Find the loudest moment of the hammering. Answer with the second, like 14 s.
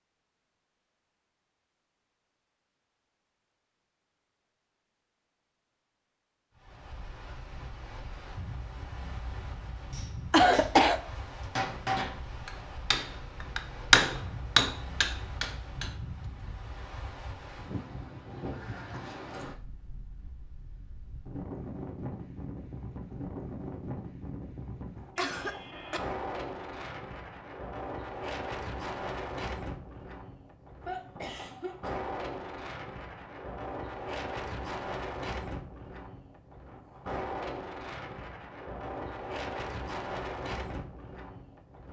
14 s.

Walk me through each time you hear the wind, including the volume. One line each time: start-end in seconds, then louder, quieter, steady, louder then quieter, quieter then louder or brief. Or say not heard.
6.5-41.8 louder.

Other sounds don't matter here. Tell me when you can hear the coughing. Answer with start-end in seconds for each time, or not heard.
10.3-11.0, 25.1-26.0, 30.9-31.9.